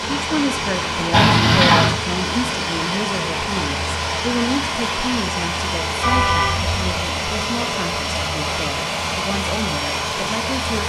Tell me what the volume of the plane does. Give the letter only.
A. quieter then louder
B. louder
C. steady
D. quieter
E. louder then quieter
C.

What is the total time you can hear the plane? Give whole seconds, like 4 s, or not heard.
11 s.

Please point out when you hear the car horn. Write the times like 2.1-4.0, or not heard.
1.1-1.9, 6.0-6.8.